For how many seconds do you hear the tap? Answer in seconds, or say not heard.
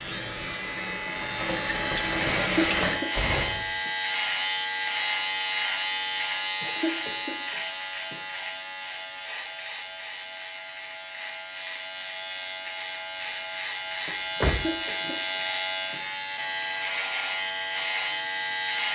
3 s.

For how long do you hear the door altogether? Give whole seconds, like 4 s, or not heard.
2 s.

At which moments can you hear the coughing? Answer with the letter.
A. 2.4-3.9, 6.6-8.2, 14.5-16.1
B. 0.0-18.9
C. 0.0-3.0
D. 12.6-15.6
A.